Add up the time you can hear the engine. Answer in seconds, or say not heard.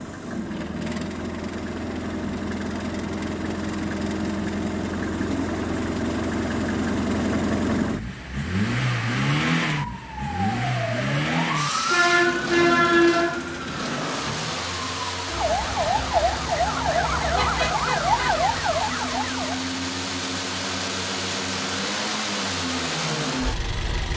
24 s.